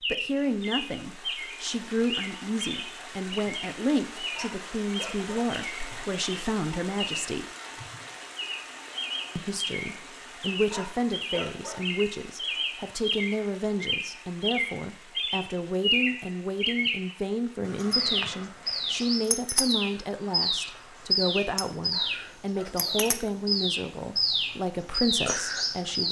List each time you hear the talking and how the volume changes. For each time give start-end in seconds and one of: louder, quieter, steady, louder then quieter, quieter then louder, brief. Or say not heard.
0.1-7.5 steady
9.3-26.0 steady.